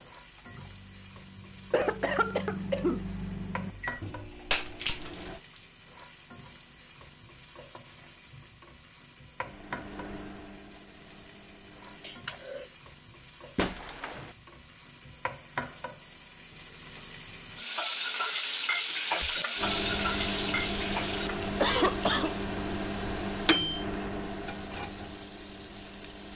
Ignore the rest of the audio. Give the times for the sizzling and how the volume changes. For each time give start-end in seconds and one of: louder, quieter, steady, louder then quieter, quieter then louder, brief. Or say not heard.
0.0-26.3 louder then quieter.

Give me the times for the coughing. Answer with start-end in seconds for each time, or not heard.
1.7-3.0, 12.0-12.7, 21.6-22.3.